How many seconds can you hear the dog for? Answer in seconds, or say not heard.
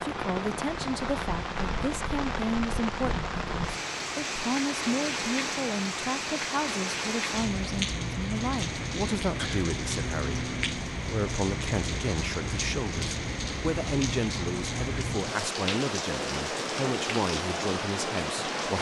not heard.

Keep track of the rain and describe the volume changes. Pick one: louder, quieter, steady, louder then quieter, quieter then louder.
steady.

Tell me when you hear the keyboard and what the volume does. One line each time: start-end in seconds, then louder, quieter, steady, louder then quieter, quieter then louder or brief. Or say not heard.
not heard.